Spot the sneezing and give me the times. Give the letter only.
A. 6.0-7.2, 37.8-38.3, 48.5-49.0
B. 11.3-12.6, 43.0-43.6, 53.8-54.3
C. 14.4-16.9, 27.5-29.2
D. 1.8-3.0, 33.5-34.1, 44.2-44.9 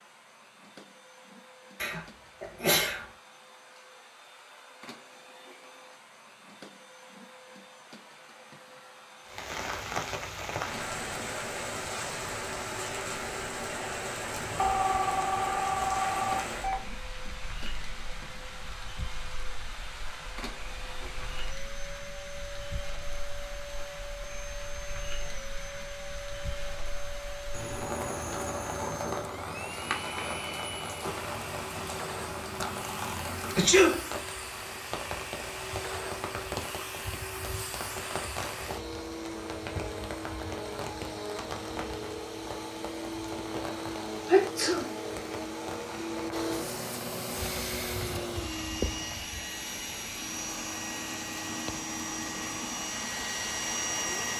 D.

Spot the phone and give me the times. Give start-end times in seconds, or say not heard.
14.4-16.9, 27.5-29.2.